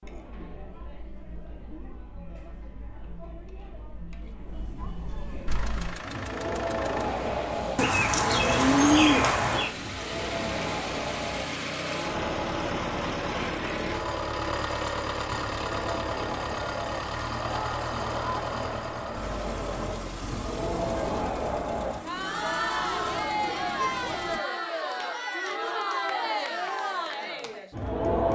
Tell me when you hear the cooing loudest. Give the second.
9 s.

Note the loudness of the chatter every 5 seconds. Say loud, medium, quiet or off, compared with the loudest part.
quiet, loud, medium, medium, loud, loud.